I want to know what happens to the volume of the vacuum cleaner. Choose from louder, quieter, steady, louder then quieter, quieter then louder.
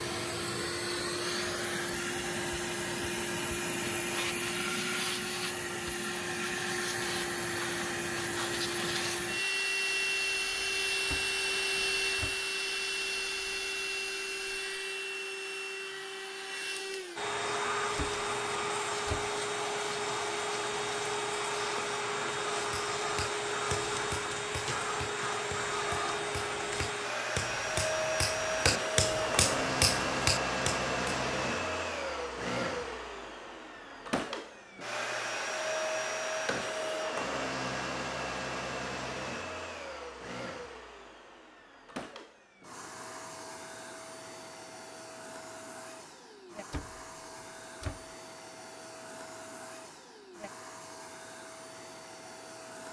quieter.